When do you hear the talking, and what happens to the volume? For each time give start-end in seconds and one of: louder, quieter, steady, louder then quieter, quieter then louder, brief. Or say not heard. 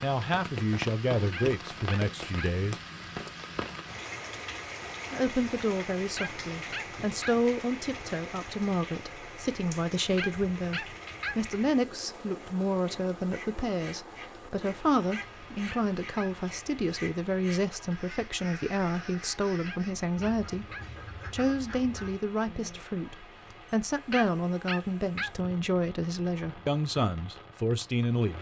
0.0-2.8 brief
5.1-20.6 steady
21.3-28.3 steady.